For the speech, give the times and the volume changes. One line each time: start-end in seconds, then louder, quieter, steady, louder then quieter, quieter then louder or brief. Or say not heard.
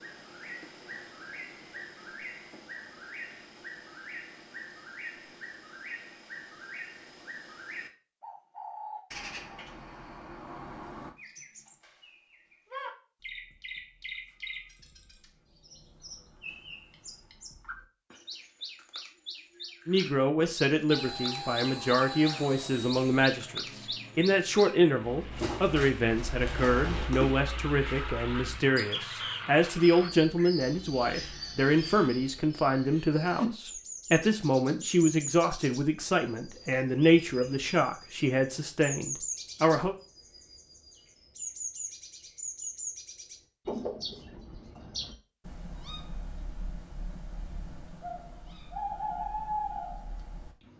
19.9-40.0 steady.